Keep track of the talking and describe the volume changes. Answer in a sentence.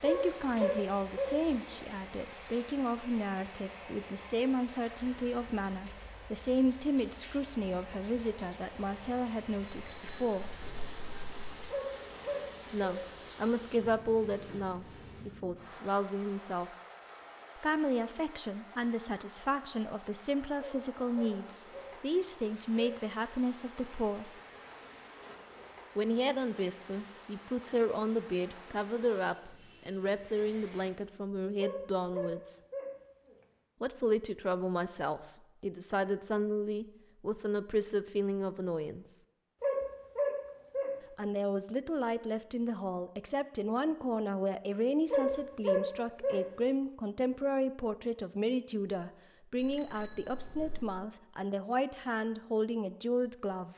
The loudness of the talking stays about the same.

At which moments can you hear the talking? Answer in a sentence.
You can hear the talking from 0.0 to 10.6 s, from 12.7 to 16.7 s, from 17.6 to 24.3 s, from 25.9 to 32.6 s, from 33.8 to 39.1 s and from 41.1 to 53.7 s.